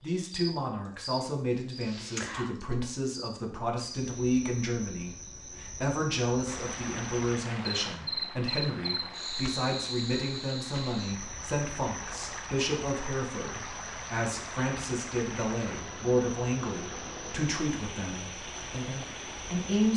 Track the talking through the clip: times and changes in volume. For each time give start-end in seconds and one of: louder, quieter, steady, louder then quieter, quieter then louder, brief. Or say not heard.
0.0-19.9 steady.